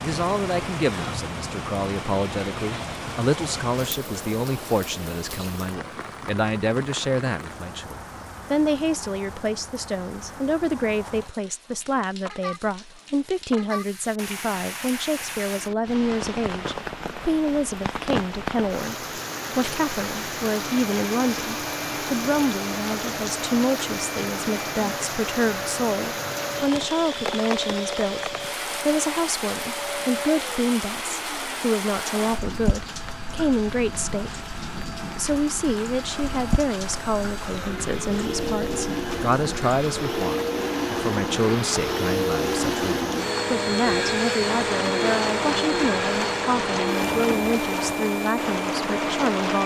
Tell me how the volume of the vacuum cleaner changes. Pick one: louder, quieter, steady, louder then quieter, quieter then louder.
louder.